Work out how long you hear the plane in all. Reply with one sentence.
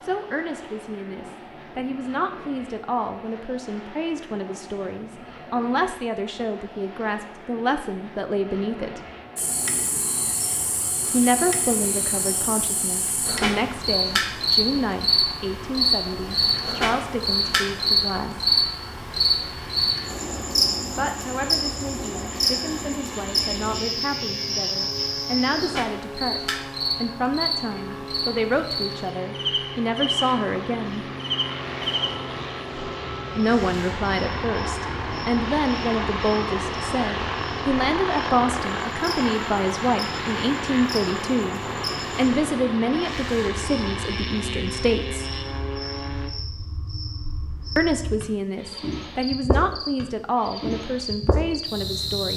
The plane can be heard for 46 seconds in total.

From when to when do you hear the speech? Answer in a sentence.
You can hear the speech from 0.0 to 9.0 s, from 11.1 to 18.5 s, from 20.9 to 31.1 s, from 33.4 to 45.2 s and from 47.8 to 52.3 s.